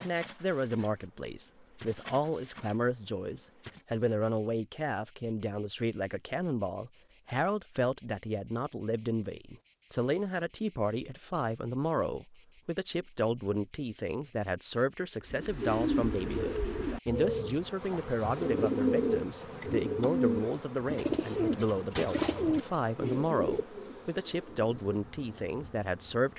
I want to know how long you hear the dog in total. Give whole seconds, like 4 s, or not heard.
not heard.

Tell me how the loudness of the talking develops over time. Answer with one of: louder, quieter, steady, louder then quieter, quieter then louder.
steady.